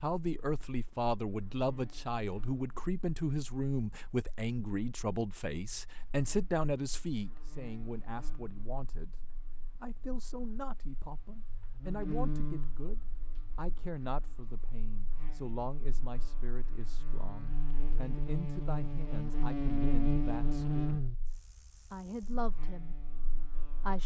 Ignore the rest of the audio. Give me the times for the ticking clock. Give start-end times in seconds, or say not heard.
not heard.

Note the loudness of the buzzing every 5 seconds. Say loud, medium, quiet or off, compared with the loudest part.
quiet, quiet, medium, loud, loud.